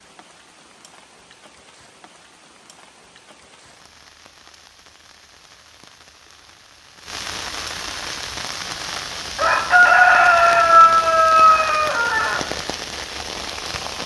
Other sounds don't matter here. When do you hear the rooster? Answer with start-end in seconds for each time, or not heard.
8.9-12.4.